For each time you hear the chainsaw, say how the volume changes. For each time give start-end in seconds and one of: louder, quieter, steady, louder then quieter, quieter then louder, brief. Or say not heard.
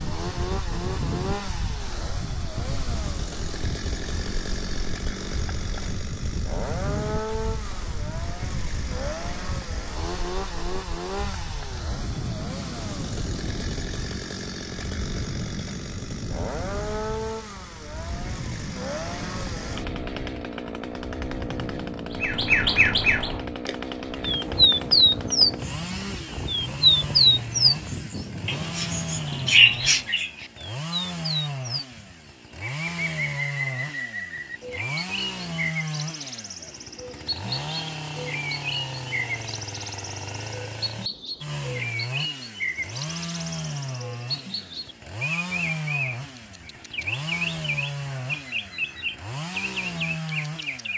0.0-50.9 steady.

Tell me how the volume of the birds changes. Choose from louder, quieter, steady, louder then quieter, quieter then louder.
quieter.